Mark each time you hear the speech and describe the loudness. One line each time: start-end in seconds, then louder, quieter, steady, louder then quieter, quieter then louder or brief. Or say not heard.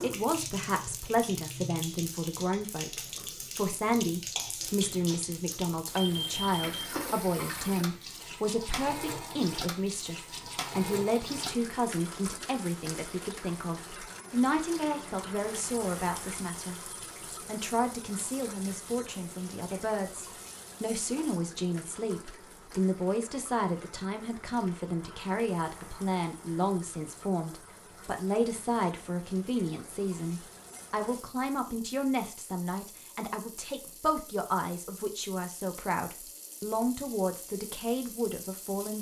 0.0-38.9 steady.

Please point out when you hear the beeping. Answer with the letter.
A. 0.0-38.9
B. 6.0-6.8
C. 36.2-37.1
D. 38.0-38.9
B.